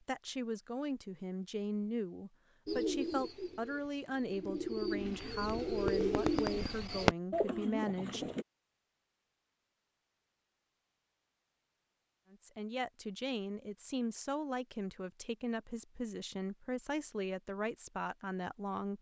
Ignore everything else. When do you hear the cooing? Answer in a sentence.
You can hear the cooing from 2.6 to 8.4 s.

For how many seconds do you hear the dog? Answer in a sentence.
The dog can't be heard in this clip.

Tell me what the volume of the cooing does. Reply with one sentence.
The loudness of the cooing goes up.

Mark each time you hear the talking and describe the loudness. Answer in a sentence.
The talking can be heard from 0.1 to 8.3 s, at a steady volume; and from 12.3 to 18.9 s, at a steady volume.